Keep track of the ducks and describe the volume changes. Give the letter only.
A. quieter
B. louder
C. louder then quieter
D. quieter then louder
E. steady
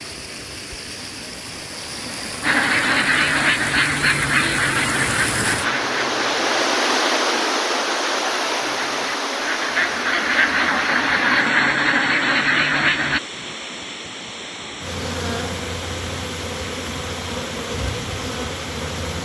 D.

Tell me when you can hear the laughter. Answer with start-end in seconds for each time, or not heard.
not heard.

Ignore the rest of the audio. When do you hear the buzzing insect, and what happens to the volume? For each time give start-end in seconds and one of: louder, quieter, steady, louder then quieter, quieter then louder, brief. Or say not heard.
14.8-19.2 steady.